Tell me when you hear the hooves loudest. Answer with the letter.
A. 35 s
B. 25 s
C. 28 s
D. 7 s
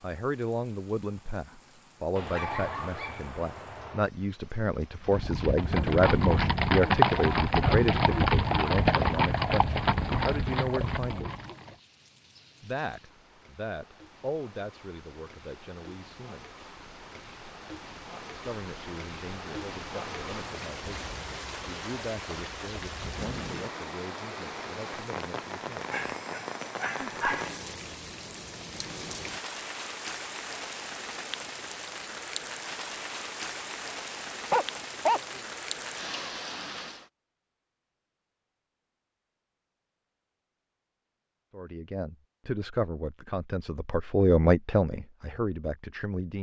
D.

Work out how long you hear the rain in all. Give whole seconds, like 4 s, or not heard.
37 s.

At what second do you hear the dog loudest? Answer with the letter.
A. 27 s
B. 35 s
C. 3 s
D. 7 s
B.